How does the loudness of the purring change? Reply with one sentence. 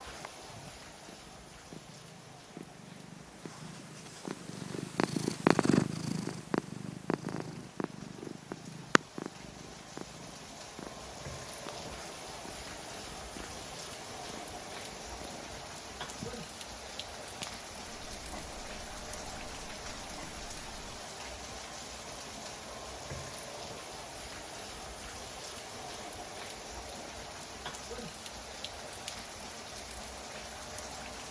The loudness of the purring goes up, then down.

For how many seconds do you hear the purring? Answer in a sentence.
The purring can be heard for 21 seconds in total.